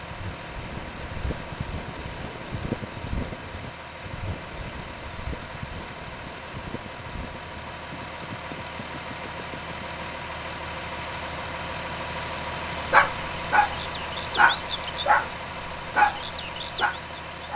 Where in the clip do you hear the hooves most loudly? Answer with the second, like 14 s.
3 s.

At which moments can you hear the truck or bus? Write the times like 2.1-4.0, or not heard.
0.0-17.5.